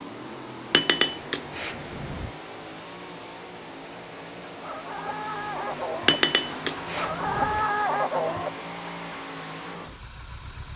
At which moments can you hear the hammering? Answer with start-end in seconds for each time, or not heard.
0.7-2.3, 6.0-7.7.